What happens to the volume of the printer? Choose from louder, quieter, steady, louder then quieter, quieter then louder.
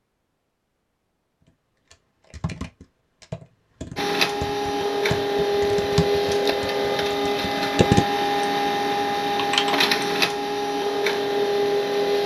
steady.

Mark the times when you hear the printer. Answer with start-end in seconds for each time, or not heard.
4.0-12.2.